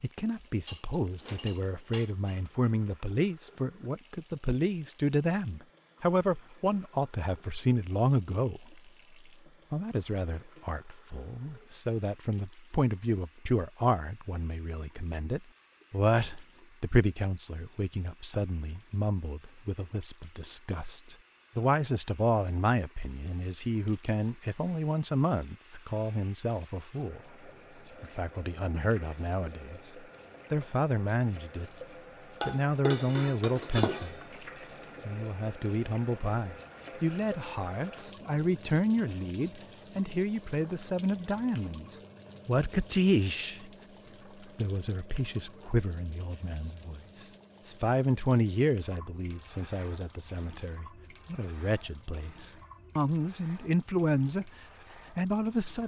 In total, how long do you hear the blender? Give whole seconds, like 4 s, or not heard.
not heard.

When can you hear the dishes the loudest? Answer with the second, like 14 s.
34 s.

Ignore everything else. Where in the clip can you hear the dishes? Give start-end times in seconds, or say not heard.
0.7-2.4, 32.4-34.2.